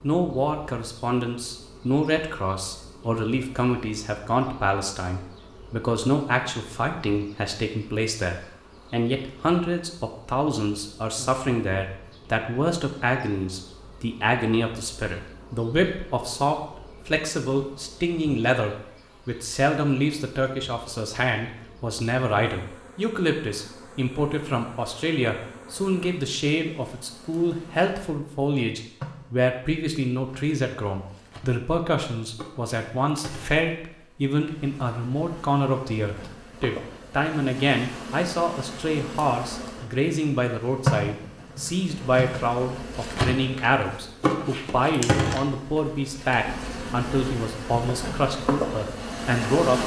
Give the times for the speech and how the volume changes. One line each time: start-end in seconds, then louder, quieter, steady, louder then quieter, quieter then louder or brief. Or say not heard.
0.0-49.8 steady.